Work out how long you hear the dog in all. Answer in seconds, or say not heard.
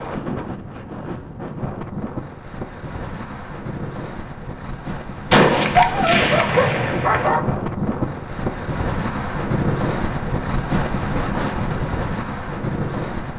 2 s.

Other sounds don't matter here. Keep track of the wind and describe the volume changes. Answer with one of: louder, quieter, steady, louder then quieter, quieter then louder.
louder.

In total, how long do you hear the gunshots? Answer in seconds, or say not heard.
2 s.